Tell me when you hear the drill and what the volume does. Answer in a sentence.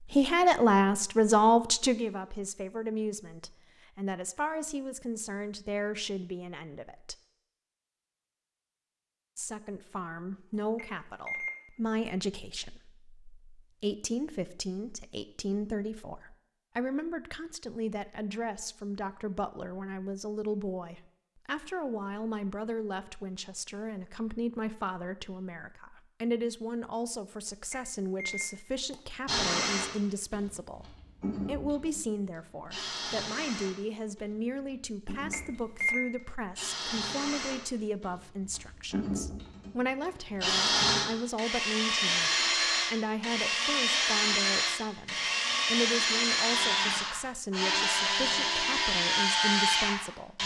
The drill can be heard from 29.2 to 50.4 s, getting louder.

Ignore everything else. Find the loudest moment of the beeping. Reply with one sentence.
The volume of the beeping peaks at 36 seconds.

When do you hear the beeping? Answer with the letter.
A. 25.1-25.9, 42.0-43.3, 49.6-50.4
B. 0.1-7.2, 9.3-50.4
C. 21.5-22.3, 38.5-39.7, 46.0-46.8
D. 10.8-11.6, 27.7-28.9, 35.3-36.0
D.